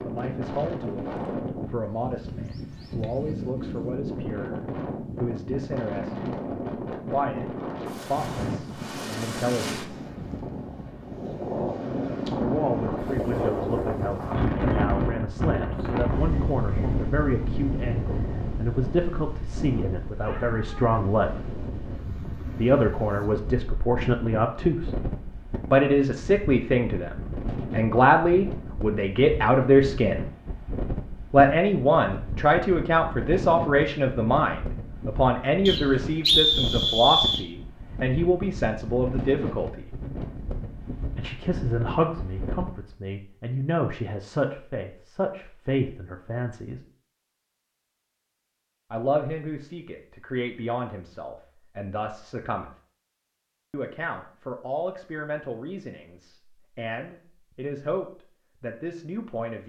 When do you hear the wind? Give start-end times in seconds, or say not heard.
0.0-43.0.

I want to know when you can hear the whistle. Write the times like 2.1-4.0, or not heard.
35.6-37.5.